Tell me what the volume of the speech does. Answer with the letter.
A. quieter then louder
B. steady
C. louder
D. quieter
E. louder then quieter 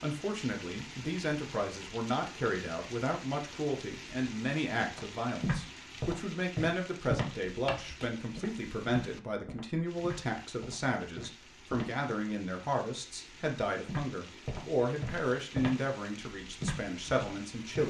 B.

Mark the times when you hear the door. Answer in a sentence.
You can't hear the door here.